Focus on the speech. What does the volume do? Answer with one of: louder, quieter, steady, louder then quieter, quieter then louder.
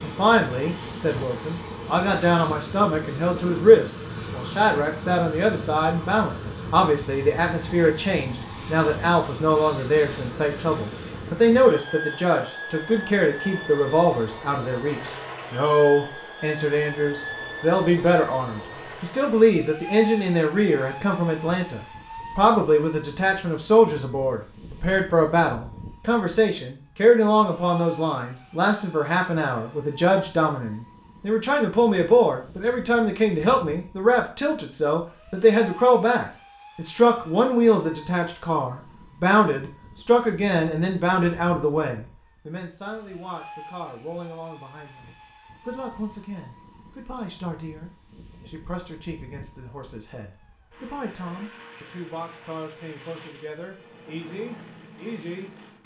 quieter.